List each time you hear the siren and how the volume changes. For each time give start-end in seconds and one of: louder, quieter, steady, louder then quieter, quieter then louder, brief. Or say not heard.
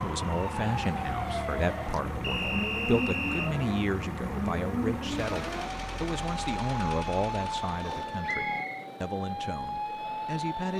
0.0-10.7 steady.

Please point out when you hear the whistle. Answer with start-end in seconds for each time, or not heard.
2.2-3.5, 8.2-8.8.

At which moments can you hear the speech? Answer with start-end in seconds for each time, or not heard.
0.0-10.7.